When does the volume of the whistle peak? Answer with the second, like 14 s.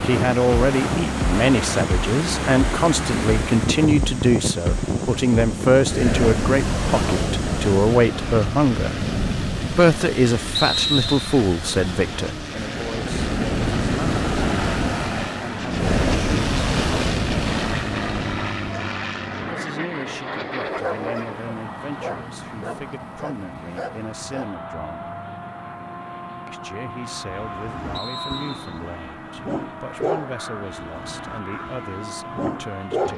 11 s.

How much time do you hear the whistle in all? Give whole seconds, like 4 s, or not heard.
2 s.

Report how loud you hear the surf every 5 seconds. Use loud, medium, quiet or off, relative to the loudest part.
loud, loud, loud, loud, off, off, off.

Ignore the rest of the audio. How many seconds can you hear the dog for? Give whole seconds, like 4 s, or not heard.
10 s.